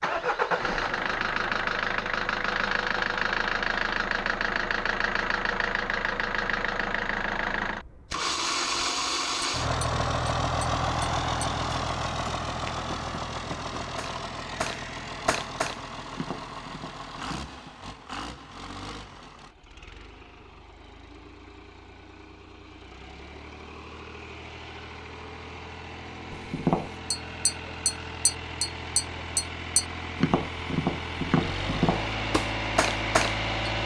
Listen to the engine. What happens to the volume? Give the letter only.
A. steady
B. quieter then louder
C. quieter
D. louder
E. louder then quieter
B.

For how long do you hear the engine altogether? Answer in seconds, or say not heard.
34 s.